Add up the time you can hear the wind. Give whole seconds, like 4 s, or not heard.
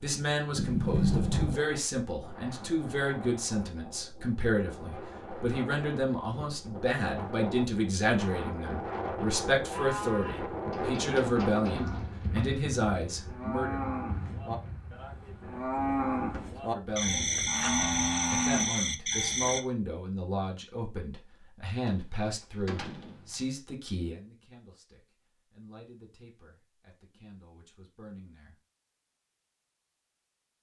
18 s.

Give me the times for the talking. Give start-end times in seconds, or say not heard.
0.0-13.8, 16.7-17.3, 18.3-28.6.